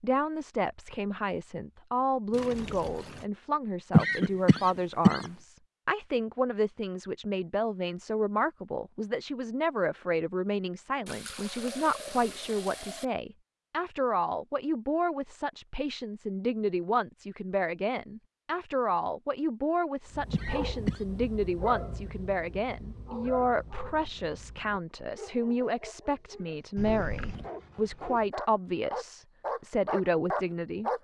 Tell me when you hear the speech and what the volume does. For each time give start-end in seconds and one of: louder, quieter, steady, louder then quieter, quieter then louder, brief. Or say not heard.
0.0-30.9 steady.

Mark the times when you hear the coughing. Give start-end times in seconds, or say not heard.
3.9-5.3, 20.3-21.0.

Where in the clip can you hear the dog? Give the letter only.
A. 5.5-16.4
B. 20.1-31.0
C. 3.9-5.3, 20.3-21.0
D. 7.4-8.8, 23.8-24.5
B.